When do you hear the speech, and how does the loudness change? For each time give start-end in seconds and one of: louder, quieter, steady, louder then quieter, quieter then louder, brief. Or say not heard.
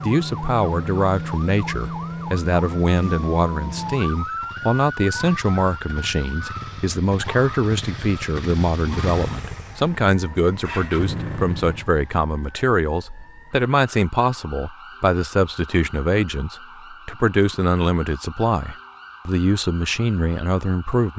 0.0-21.1 steady.